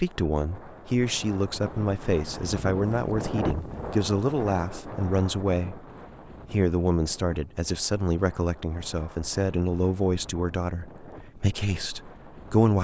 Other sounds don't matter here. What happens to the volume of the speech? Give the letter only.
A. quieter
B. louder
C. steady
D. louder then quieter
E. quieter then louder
C.